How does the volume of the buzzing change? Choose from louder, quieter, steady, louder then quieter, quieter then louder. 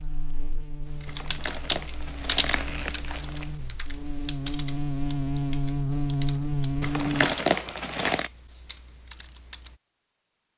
louder.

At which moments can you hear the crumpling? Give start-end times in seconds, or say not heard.
1.1-3.5, 6.8-8.3.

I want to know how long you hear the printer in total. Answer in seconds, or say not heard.
not heard.